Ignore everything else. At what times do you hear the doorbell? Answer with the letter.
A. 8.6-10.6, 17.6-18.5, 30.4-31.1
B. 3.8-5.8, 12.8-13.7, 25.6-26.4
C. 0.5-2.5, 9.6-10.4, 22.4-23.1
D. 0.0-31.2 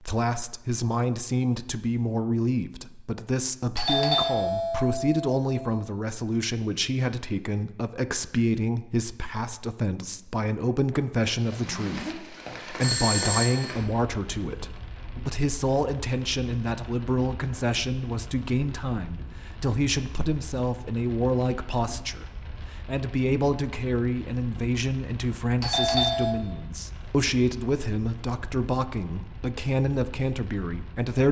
B.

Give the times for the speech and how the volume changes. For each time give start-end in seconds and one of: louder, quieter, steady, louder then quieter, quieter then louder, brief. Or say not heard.
0.0-31.2 steady.